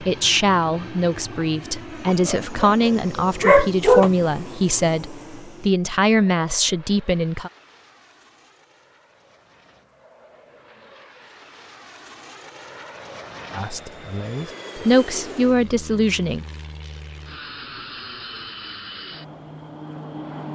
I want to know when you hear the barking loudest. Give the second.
4 s.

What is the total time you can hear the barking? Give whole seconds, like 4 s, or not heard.
2 s.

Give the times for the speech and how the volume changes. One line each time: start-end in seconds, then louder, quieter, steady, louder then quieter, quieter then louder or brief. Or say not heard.
0.0-7.5 steady
13.5-16.4 brief.